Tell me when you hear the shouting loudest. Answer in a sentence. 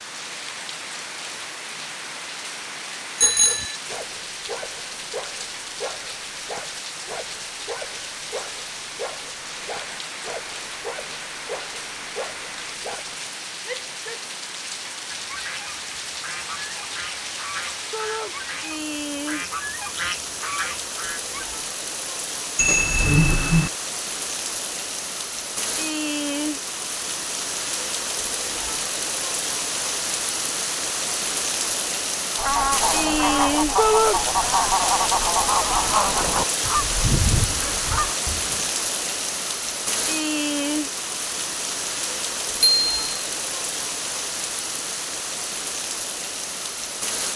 The volume of the shouting peaks at 34 seconds.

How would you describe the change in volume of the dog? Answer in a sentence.
The loudness of the dog stays about the same.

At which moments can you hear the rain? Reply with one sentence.
The rain can be heard from 0.0 to 47.3 s.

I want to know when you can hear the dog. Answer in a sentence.
You can hear the dog from 3.2 to 13.2 s.